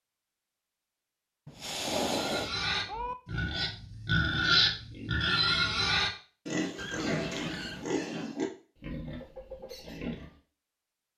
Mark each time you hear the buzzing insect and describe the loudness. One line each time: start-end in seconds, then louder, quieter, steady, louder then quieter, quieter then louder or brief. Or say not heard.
not heard.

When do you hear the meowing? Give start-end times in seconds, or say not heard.
1.4-3.1, 6.8-7.9.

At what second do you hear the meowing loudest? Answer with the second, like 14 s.
2 s.